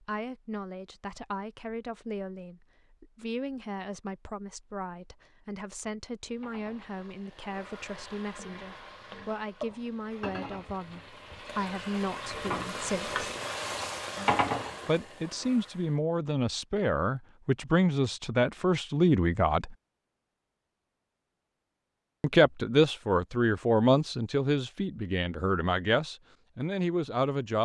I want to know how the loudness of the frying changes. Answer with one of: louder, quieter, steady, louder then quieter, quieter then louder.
louder.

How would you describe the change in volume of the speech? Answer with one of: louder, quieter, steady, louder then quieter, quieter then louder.
louder.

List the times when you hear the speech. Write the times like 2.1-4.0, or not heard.
0.0-13.2, 14.8-19.8, 22.2-27.6.